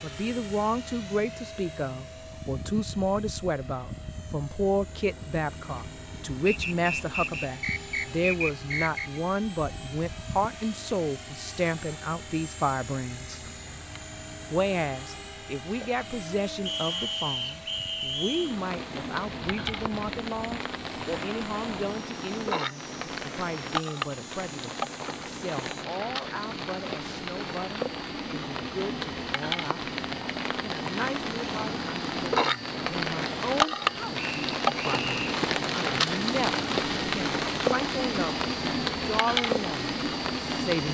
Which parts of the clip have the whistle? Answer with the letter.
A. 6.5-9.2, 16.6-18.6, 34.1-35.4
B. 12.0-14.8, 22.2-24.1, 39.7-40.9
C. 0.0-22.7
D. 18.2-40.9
A.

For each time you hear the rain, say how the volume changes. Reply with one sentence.
The rain can be heard from 18.2 to 40.9 s, getting louder.